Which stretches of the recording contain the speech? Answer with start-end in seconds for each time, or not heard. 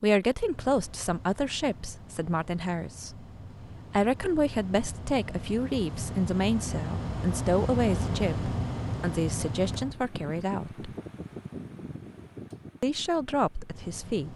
0.0-3.2, 3.9-10.9, 12.8-14.3.